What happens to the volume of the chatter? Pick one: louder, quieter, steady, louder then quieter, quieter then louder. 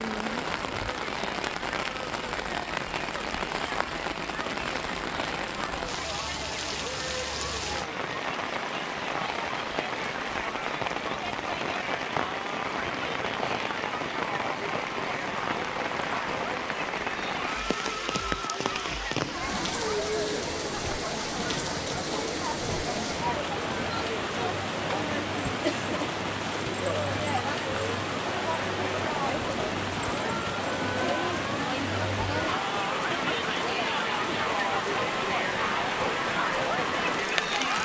louder.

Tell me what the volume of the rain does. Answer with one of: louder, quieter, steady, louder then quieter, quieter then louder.
steady.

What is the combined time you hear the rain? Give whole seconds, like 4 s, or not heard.
38 s.